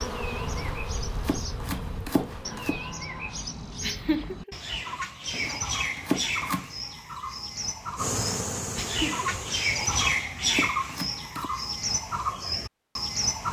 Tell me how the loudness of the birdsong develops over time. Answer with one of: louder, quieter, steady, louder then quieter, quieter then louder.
louder.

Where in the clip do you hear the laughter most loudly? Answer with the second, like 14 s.
4 s.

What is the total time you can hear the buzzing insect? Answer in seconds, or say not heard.
5 s.